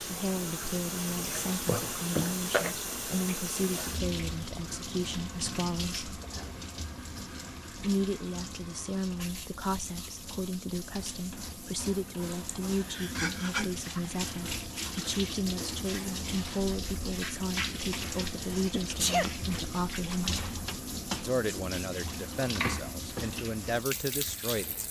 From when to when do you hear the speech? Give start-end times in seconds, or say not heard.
0.1-6.1, 7.8-20.4, 21.2-24.8.